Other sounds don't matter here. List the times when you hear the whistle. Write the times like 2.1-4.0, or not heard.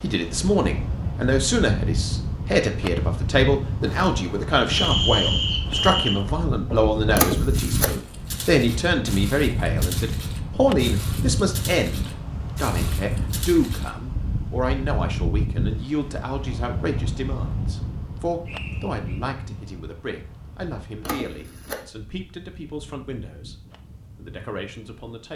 4.7-6.2, 18.4-19.2.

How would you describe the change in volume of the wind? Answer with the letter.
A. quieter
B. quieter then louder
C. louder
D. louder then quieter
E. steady
A.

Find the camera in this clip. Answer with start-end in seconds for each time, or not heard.
7.2-8.0, 21.0-21.9.